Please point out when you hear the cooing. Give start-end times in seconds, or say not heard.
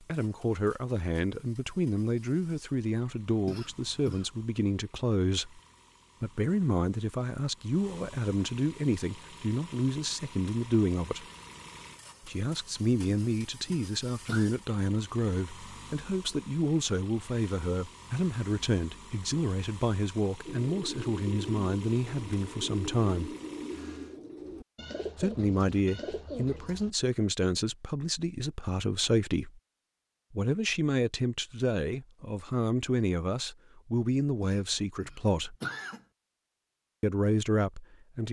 20.4-26.9.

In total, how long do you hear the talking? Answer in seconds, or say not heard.
33 s.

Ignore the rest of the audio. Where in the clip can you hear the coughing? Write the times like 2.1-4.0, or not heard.
3.5-4.2, 13.1-14.5, 34.4-36.0.